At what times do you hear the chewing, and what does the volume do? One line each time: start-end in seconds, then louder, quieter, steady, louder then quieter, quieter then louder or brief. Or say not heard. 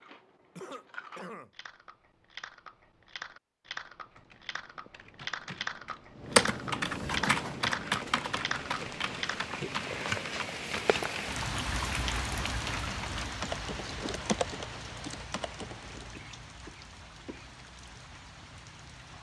0.0-9.4 louder.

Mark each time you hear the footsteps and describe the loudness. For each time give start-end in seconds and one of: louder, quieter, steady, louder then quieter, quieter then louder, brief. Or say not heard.
not heard.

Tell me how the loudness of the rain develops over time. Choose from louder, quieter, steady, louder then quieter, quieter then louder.
louder then quieter.